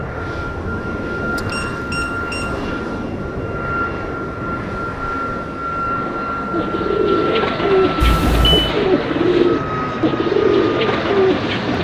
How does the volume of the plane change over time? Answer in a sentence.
The volume of the plane stays about the same.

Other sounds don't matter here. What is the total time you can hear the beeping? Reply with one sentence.
You can hear the beeping for 2 seconds altogether.